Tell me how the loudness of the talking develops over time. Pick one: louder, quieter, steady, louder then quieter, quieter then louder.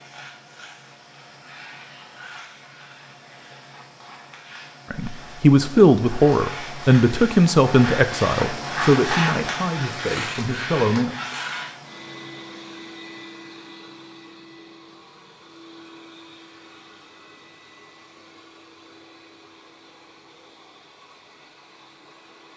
quieter.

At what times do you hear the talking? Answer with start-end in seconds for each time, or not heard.
4.9-11.2.